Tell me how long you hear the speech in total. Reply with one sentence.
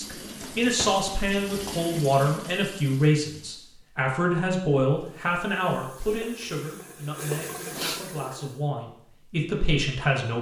The speech can be heard for 10 seconds in total.